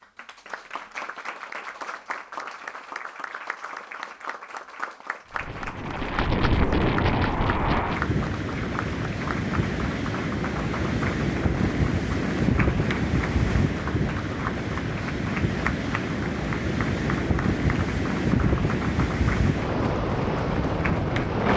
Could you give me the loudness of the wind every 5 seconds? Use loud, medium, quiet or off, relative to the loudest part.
off, loud, loud, loud, loud.